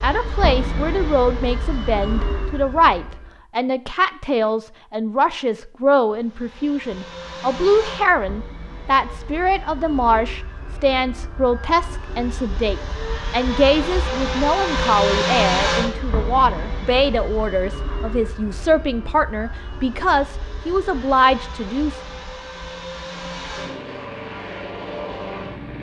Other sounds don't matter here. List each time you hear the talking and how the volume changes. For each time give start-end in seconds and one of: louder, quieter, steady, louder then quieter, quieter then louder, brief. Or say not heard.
0.0-22.0 steady.